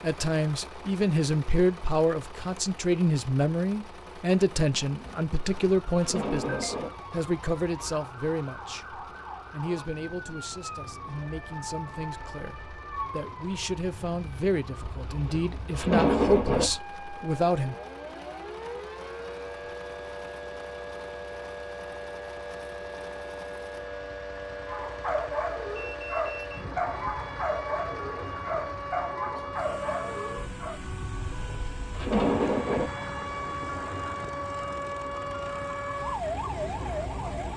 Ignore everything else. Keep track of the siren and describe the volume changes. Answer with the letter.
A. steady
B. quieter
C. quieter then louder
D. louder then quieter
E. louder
E.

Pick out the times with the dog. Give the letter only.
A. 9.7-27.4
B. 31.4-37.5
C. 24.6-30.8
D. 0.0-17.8
C.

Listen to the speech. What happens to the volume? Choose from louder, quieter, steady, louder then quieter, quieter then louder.
quieter then louder.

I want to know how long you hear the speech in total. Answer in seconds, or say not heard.
18 s.